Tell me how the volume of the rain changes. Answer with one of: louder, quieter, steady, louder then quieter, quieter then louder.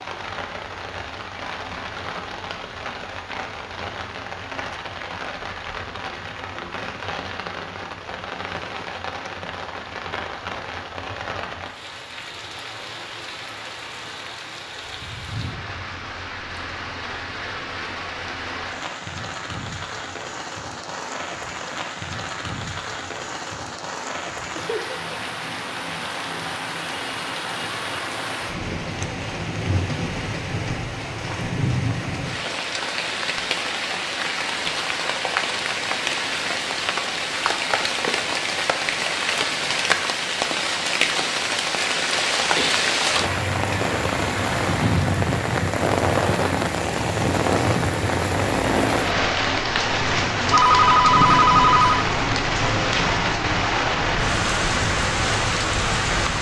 louder.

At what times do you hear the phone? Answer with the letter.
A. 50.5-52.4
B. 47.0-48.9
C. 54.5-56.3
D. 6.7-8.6
A.